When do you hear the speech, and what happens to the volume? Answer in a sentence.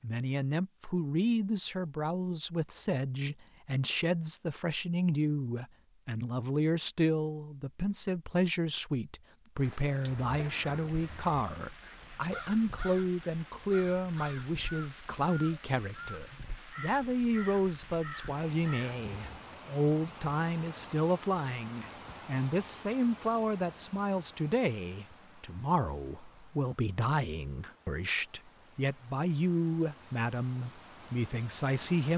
You can hear the speech from 0.0 to 32.1 s, at a steady volume.